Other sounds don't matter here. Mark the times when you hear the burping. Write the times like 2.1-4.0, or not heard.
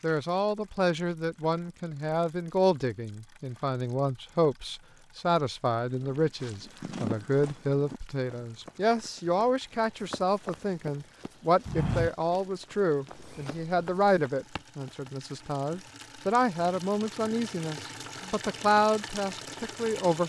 not heard.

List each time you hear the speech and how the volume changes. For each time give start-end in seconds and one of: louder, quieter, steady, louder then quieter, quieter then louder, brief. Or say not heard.
0.0-20.2 steady.